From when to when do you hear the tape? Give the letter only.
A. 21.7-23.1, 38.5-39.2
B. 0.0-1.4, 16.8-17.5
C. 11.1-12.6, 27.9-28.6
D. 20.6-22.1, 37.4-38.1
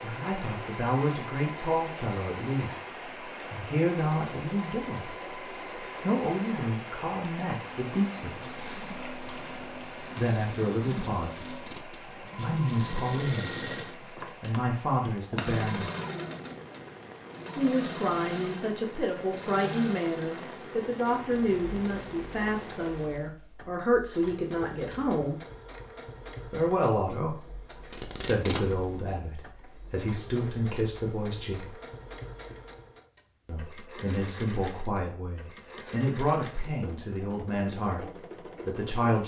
C.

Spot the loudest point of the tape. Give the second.
28 s.